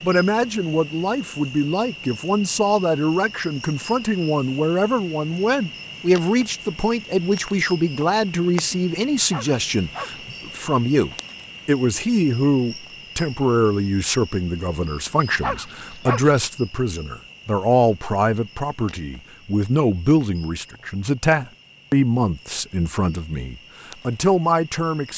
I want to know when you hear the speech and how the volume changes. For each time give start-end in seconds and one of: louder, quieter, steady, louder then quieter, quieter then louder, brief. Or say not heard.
0.0-25.1 steady.